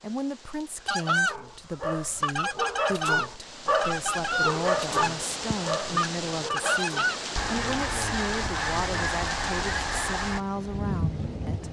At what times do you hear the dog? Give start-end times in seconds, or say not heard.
1.0-7.2.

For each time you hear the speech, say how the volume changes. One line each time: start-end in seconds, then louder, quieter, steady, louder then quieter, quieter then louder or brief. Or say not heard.
0.0-11.6 steady.